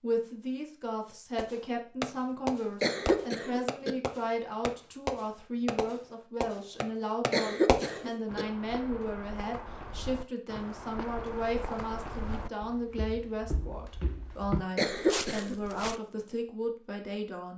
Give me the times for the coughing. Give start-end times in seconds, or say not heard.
2.8-4.0, 7.3-8.4, 14.8-15.6.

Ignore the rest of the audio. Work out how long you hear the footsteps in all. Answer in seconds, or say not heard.
8 s.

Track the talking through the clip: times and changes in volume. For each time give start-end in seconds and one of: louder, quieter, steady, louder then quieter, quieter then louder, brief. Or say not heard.
0.0-17.5 steady.